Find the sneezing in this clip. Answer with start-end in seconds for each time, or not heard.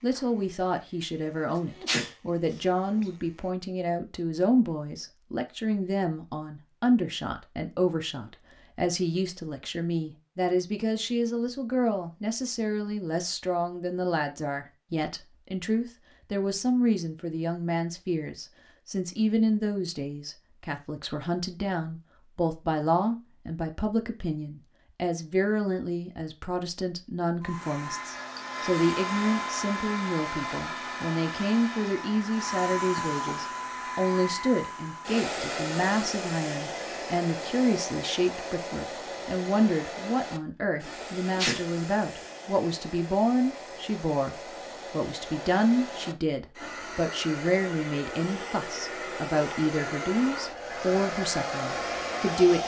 1.4-3.0, 41.0-41.6.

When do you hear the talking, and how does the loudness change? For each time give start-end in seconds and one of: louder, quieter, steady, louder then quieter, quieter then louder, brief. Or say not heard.
0.0-52.6 steady.